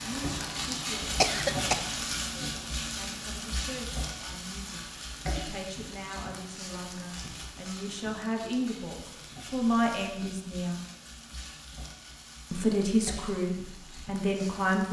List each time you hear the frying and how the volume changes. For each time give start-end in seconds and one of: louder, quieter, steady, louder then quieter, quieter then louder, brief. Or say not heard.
0.0-14.8 quieter.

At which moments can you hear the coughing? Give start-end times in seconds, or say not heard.
1.2-1.8.